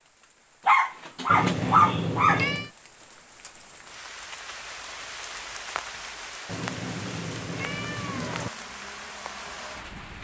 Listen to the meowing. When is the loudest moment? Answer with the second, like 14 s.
2 s.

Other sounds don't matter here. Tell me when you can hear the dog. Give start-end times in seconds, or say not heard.
0.7-2.5.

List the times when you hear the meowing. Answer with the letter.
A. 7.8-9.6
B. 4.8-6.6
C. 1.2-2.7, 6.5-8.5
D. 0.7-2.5
C.